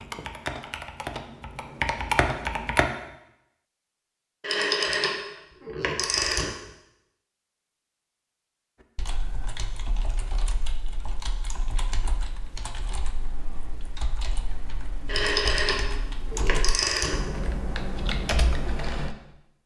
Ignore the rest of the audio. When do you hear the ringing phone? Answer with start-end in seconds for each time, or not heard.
4.4-6.5, 15.1-17.4.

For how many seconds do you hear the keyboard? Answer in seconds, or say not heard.
13 s.